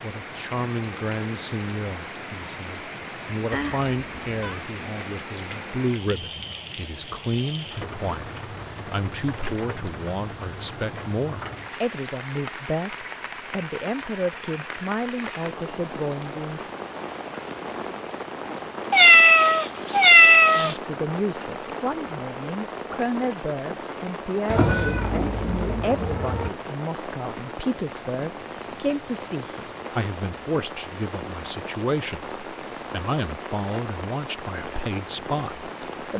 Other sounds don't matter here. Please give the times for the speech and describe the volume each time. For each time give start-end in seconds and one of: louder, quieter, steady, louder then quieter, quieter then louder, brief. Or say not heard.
0.0-16.6 steady
20.6-36.1 steady.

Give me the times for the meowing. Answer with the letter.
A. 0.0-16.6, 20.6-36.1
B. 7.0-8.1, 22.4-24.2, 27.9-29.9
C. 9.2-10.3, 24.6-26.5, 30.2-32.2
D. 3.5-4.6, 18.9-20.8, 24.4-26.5
D.